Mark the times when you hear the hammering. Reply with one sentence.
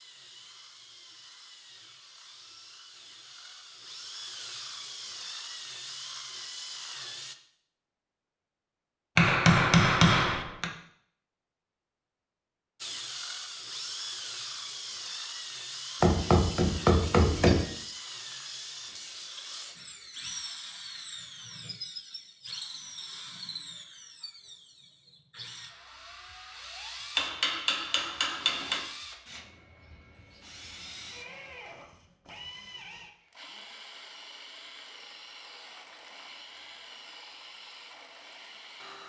The hammering can be heard from 9.2 to 10.7 s, from 16.0 to 17.6 s and from 27.1 to 28.8 s.